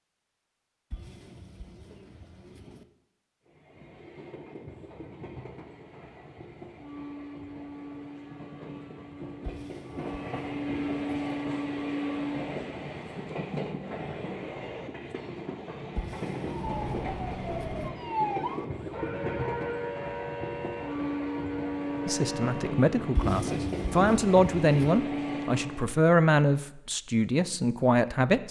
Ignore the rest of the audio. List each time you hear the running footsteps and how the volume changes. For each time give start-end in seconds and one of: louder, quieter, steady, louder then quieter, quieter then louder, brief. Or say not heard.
not heard.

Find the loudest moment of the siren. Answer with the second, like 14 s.
18 s.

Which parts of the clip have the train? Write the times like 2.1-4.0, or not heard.
3.5-25.9.